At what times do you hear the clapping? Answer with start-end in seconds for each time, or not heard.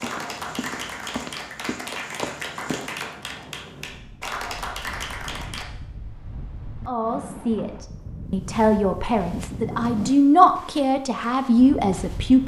0.0-5.7.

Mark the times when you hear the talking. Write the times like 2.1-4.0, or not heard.
6.8-12.4.